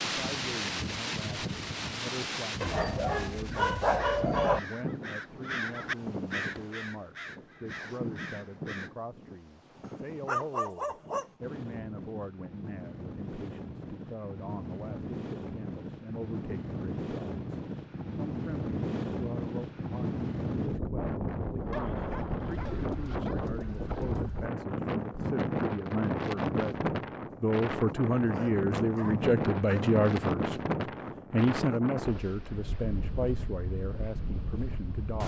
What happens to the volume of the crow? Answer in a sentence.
The volume of the crow goes up, then down.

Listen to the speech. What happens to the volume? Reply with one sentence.
The volume of the speech goes up.